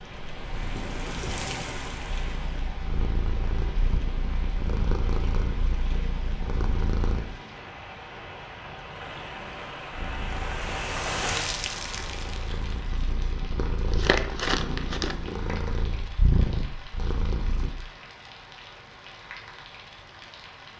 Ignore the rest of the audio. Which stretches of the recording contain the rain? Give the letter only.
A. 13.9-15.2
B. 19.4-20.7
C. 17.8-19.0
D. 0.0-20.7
D.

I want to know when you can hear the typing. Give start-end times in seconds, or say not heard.
not heard.